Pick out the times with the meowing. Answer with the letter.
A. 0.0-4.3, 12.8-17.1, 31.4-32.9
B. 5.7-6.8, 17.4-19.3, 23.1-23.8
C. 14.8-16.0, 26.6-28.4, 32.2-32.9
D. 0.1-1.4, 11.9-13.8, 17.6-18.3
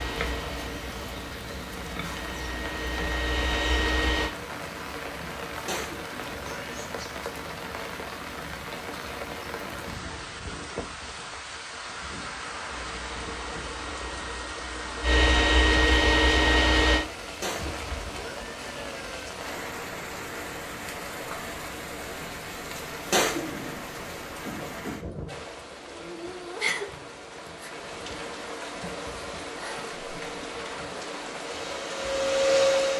B.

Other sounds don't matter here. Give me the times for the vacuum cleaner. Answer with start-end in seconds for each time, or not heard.
0.0-4.3, 12.8-17.1, 31.4-32.9.